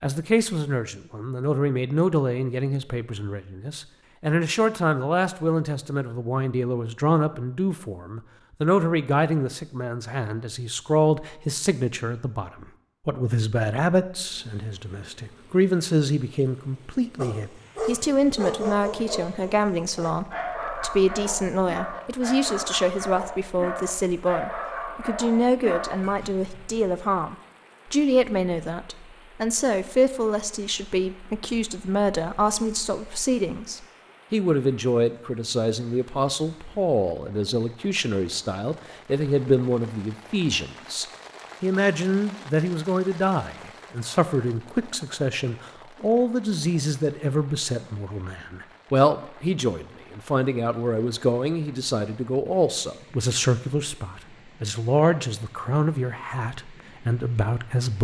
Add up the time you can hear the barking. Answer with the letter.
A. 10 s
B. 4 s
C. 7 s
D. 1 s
A.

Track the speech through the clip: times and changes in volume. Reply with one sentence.
You can hear the speech from 0.0 to 58.0 s, at a steady volume.